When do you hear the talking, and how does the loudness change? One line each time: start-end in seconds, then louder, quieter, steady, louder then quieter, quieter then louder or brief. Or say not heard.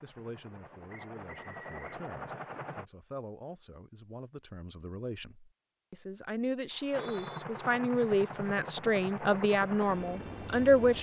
0.0-10.9 louder.